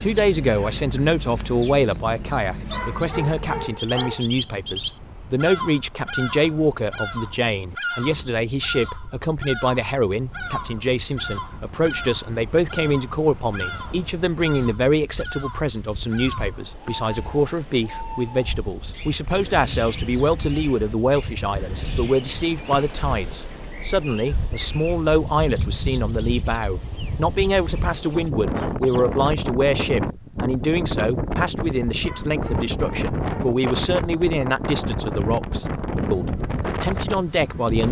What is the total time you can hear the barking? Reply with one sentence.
The barking can be heard for 3 seconds in total.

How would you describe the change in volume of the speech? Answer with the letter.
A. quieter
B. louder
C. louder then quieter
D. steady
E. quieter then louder
D.